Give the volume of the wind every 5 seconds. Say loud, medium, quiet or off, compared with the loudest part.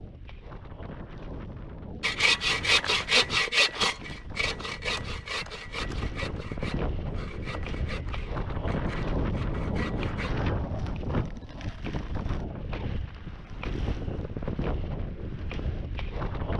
medium, loud, loud, loud.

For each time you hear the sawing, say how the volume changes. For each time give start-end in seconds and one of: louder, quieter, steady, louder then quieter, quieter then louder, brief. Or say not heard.
2.0-10.3 quieter.